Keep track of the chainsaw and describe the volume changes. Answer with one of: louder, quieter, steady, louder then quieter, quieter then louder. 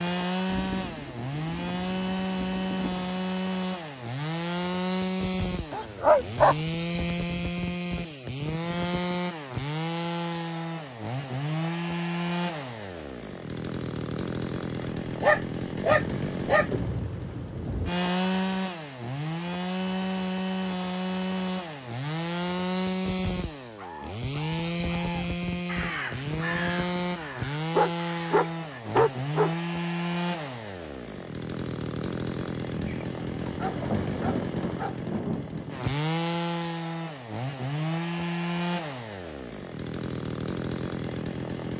steady.